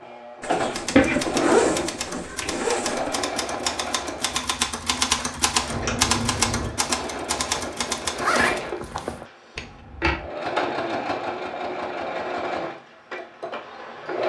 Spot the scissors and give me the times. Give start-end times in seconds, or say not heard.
0.9-2.6, 5.7-6.8, 9.6-10.3.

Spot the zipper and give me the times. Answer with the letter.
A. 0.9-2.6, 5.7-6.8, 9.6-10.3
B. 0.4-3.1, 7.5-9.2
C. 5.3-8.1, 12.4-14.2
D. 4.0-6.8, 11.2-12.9
B.